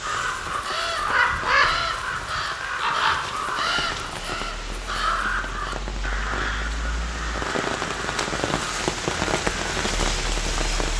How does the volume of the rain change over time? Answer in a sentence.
The loudness of the rain goes up.